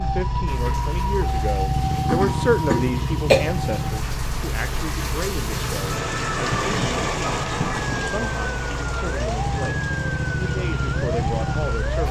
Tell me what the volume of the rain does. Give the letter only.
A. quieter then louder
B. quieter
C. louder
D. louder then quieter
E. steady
D.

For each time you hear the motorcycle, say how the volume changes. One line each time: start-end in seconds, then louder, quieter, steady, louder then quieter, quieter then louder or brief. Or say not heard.
0.0-12.0 quieter then louder.